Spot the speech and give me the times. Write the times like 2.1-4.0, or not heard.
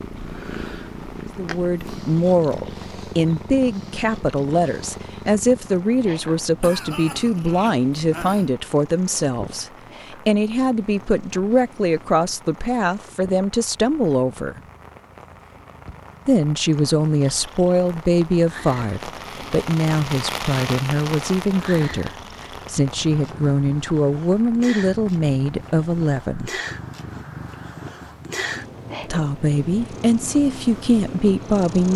1.4-14.6, 16.2-26.5, 29.0-31.9.